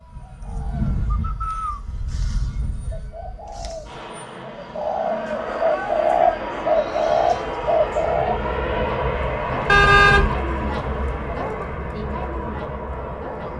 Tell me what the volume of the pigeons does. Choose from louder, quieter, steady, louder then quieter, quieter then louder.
quieter then louder.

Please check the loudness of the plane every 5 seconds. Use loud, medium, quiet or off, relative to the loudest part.
medium, loud, loud.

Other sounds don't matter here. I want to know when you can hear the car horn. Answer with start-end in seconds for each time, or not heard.
9.7-10.3.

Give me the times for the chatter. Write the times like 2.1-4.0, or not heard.
4.8-13.5.